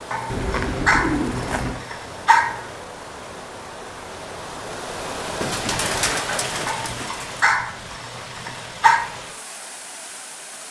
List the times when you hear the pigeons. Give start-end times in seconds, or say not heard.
0.3-1.9, 5.4-7.4.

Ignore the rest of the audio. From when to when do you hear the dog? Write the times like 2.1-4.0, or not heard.
0.1-2.7, 6.7-9.1.